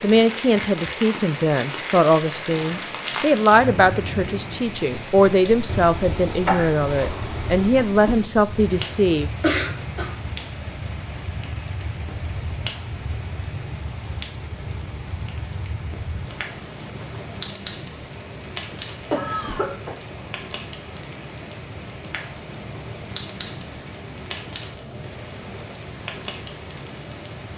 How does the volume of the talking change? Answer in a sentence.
The loudness of the talking stays about the same.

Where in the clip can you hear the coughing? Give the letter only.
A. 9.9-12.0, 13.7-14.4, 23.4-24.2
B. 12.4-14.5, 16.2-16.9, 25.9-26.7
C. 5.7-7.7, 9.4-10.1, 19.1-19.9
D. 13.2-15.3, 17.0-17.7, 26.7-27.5
C.